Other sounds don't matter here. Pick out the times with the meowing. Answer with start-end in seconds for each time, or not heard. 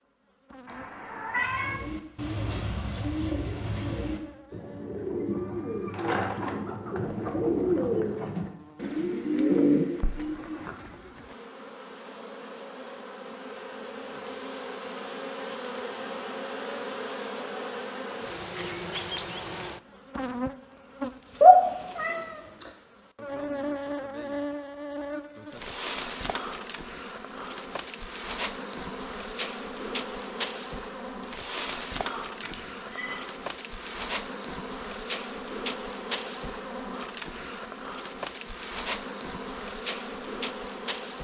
0.7-1.8, 21.4-22.6, 32.0-33.2.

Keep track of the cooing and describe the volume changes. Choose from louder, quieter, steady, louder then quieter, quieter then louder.
louder.